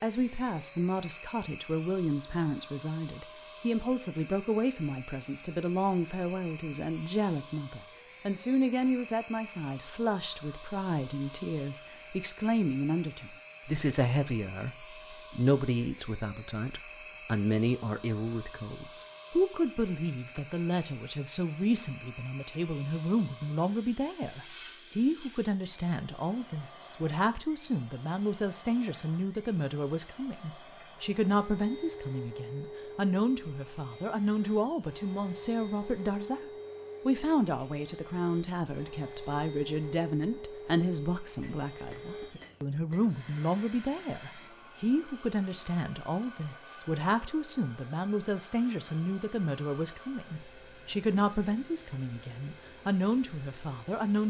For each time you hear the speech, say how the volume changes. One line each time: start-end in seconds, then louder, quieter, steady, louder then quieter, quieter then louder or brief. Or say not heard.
0.0-54.2 steady.